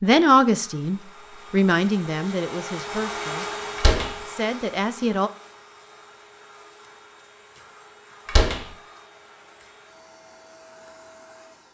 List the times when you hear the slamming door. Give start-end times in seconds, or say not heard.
3.8-4.2, 8.2-8.7.